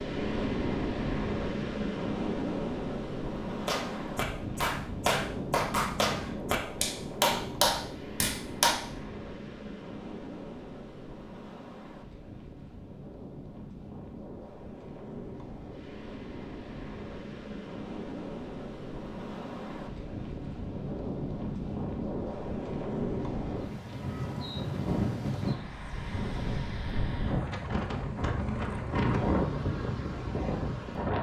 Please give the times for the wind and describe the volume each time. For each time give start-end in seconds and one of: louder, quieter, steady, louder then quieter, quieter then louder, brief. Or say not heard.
0.0-31.1 quieter then louder.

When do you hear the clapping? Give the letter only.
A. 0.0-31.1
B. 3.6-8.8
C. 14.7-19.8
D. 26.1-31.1
B.